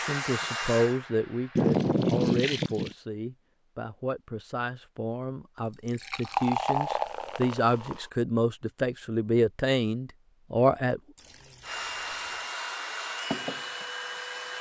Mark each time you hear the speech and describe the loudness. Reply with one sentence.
You can hear the speech from 0.0 to 11.0 s, getting quieter then louder.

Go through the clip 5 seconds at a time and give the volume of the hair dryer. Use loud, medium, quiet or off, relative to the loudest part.
loud, off, loud.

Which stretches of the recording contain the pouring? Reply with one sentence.
The pouring can be heard from 1.6 to 3.0 s, from 5.7 to 8.1 s and from 11.2 to 12.5 s.